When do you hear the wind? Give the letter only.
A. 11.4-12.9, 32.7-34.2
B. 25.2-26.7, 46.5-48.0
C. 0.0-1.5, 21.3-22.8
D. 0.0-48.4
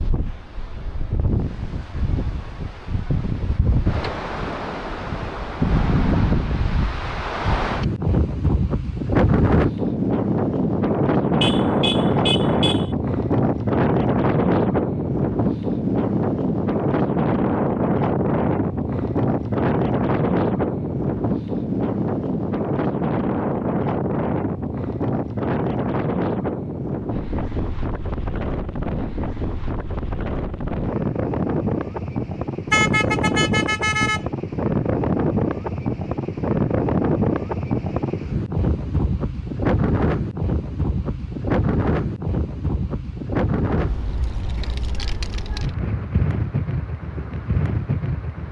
D.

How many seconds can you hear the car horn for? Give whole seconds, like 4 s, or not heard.
3 s.